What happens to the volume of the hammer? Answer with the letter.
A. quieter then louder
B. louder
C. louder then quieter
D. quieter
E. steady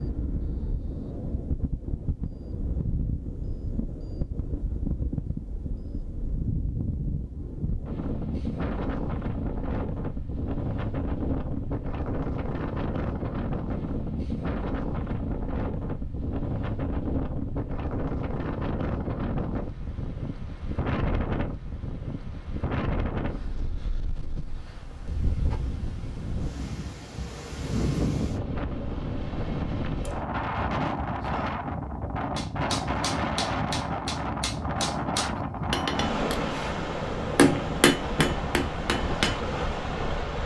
B.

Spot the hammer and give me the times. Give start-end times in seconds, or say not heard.
32.4-39.4.